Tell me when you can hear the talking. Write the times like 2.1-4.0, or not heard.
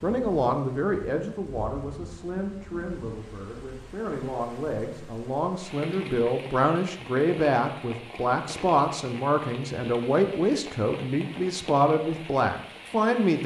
0.0-13.4.